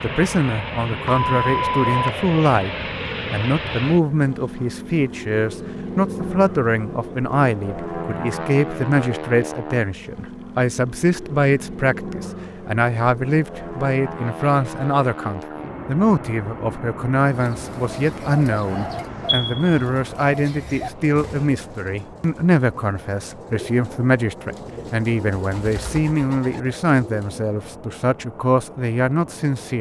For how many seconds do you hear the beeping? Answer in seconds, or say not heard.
2 s.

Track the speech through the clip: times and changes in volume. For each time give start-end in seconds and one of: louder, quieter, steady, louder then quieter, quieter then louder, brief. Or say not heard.
0.0-2.7 brief
3.3-29.7 steady.